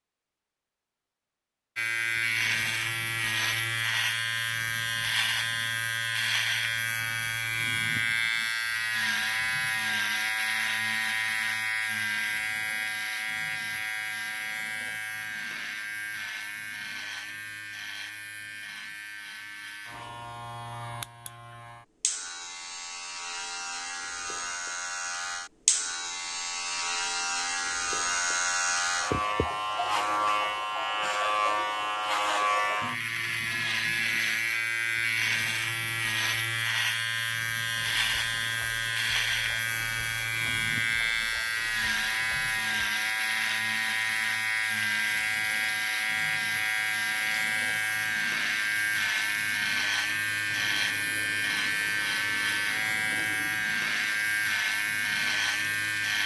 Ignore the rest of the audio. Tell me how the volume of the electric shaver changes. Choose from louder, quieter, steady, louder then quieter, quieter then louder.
quieter then louder.